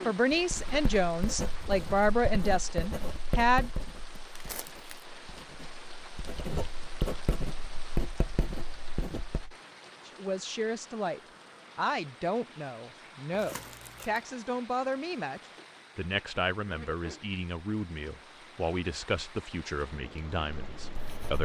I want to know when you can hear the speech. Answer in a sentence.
The speech can be heard from 0.1 to 3.7 s and from 10.1 to 21.4 s.